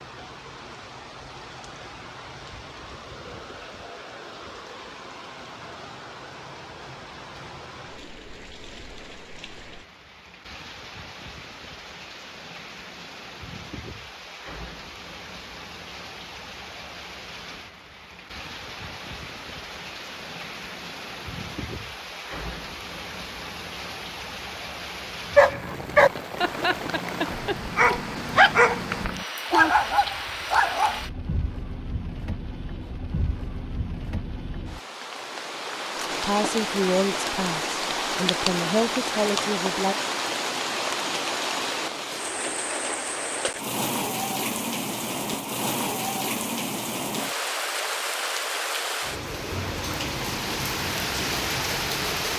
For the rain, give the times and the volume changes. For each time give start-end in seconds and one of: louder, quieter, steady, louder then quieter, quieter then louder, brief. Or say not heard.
0.0-52.3 louder.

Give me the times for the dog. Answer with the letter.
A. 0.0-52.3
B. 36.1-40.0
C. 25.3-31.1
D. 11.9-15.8
C.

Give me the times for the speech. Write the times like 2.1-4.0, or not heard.
36.1-40.0.